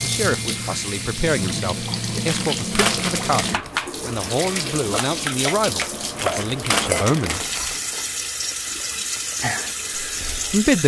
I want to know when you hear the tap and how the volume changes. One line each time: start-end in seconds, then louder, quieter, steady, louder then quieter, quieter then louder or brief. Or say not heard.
0.0-10.8 steady.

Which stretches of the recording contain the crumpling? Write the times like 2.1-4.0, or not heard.
2.2-3.7, 6.2-7.8.